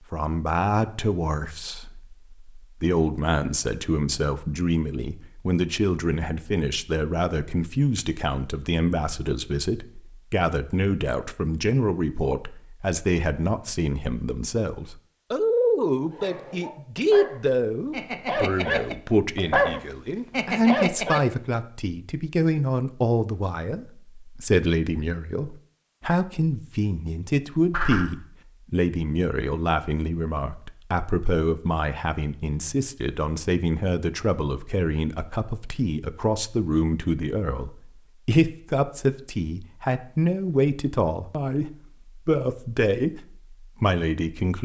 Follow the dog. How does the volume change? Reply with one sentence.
The volume of the dog goes up.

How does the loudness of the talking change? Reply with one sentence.
The loudness of the talking stays about the same.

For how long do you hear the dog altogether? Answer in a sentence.
You can hear the dog for 5 seconds altogether.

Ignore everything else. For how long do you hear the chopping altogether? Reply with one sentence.
The chopping can't be heard in this clip.